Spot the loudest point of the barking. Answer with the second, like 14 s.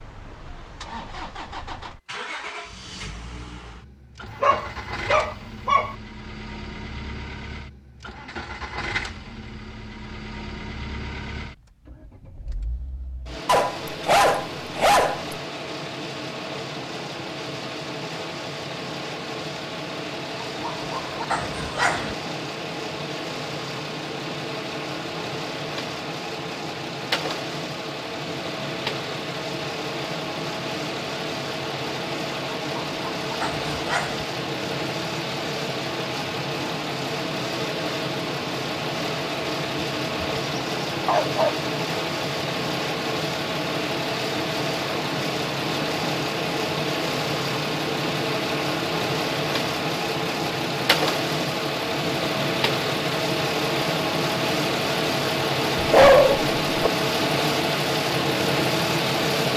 56 s.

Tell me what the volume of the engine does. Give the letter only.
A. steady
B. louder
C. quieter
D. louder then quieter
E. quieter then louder
B.